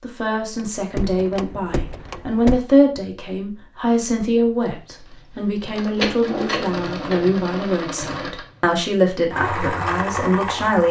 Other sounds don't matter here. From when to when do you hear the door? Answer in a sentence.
The door can be heard from 0.9 to 2.6 s.